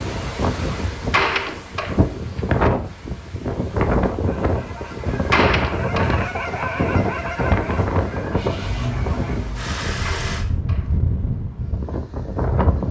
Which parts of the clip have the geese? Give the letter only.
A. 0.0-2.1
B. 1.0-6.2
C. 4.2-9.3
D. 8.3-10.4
C.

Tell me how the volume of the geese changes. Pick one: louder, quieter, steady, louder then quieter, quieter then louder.
louder then quieter.